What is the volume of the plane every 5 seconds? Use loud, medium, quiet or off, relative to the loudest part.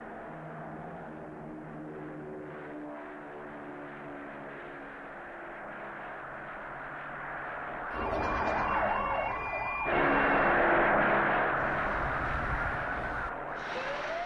quiet, medium, loud.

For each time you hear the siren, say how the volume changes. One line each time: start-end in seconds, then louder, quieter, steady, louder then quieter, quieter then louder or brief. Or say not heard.
7.9-14.2 quieter.